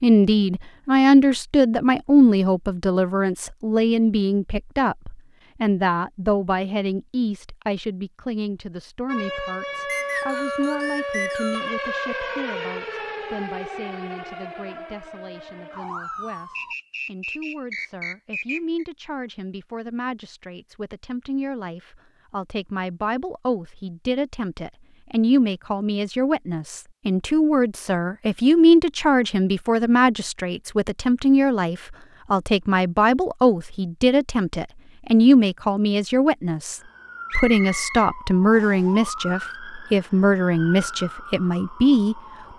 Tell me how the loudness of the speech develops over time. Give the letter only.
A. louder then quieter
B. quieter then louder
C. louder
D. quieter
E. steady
B.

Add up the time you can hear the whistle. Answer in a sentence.
The whistle can be heard for 6 seconds in total.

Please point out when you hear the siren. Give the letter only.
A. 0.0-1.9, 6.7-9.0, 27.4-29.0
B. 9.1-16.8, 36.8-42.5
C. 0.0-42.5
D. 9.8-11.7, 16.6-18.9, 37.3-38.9
B.